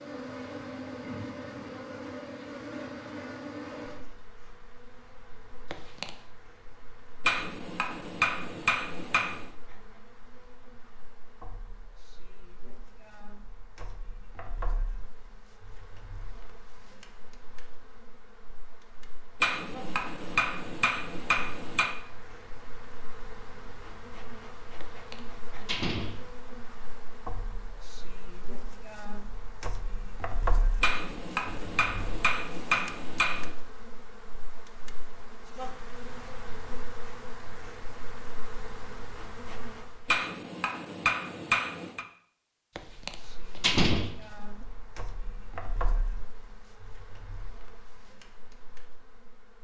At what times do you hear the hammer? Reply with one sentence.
You can hear the hammer from 7.2 to 9.5 s, from 19.4 to 21.9 s, from 30.8 to 33.5 s and from 40.0 to 42.0 s.